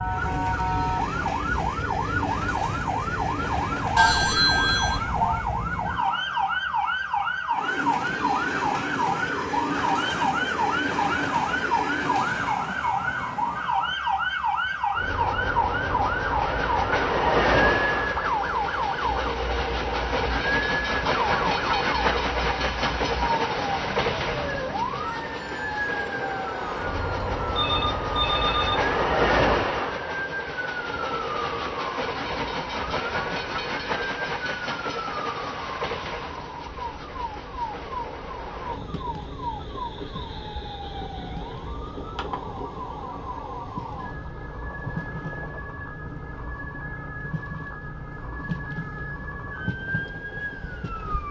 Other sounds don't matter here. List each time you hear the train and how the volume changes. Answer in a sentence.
You can hear the train from 0.0 to 51.2 s, getting louder then quieter.